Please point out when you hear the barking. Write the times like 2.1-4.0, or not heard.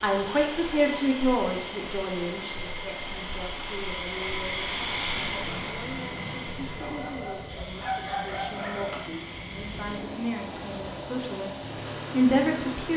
6.8-9.1.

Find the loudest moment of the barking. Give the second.
8 s.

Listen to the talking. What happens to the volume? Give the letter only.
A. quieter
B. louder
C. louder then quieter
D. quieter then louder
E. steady
D.